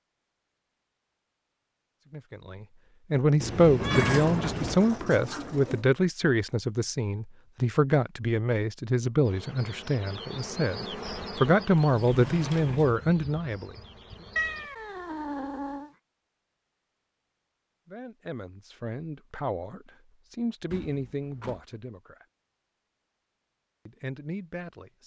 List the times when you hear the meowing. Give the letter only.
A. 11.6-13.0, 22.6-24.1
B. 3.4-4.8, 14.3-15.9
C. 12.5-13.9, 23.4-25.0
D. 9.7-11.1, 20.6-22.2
B.